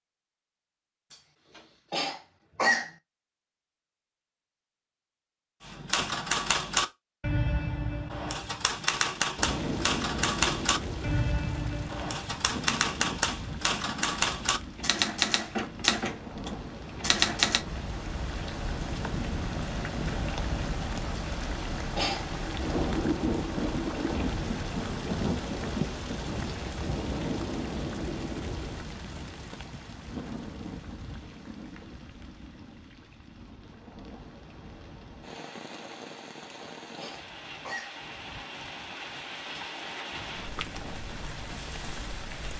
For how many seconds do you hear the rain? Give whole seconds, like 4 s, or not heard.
33 s.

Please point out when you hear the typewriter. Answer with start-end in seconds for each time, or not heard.
5.7-17.6.